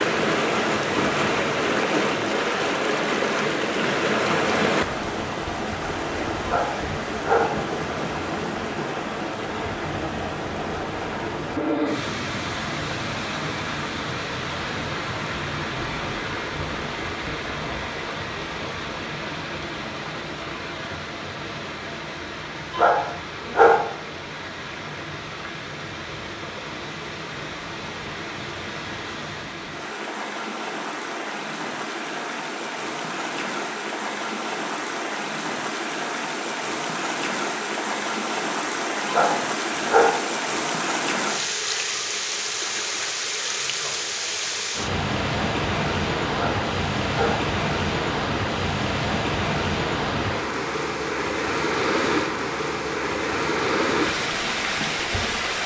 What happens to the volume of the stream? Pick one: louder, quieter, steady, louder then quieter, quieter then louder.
quieter then louder.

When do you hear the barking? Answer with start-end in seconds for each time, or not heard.
6.5-7.5, 22.7-23.8, 39.0-40.1, 46.3-47.4.